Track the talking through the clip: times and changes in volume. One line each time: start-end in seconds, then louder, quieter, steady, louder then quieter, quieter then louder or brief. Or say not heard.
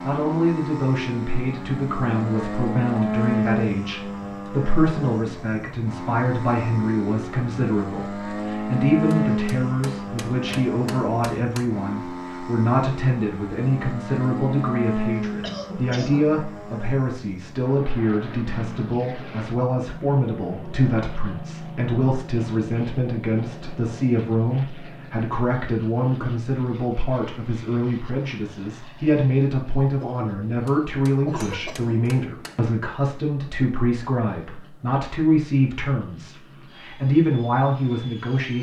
0.0-38.5 steady.